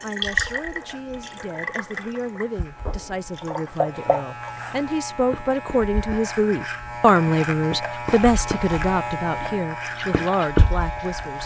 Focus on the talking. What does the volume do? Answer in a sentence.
The loudness of the talking goes up, then down.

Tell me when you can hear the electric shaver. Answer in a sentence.
The electric shaver can be heard from 0.0 to 11.4 s.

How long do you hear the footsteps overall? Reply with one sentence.
You can't hear the footsteps here.